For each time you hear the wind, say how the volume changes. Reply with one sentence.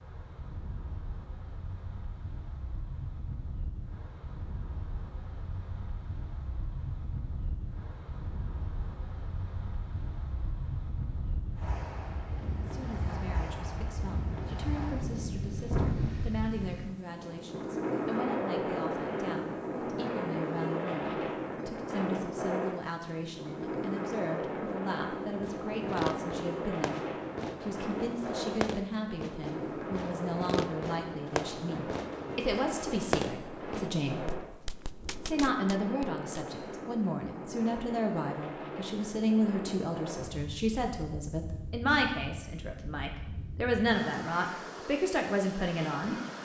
You can hear the wind from 0.0 to 46.4 s, getting louder then quieter.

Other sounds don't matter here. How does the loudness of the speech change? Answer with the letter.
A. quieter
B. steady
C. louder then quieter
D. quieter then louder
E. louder
E.